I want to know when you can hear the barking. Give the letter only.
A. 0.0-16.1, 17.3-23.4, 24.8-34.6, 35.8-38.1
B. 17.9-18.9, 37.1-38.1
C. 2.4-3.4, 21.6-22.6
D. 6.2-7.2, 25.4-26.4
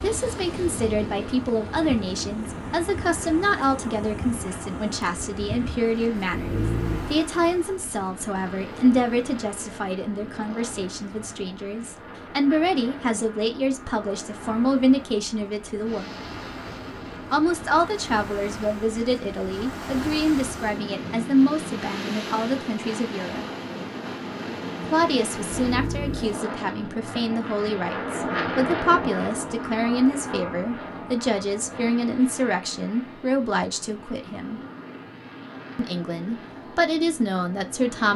D.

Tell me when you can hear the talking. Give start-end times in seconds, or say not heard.
0.0-16.1, 17.3-23.4, 24.8-34.6, 35.8-38.1.